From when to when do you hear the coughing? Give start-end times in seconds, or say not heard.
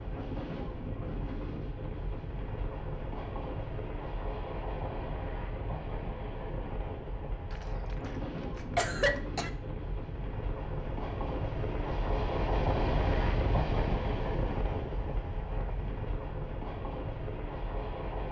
7.5-9.5.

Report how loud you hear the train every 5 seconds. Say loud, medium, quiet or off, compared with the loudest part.
medium, medium, loud, medium.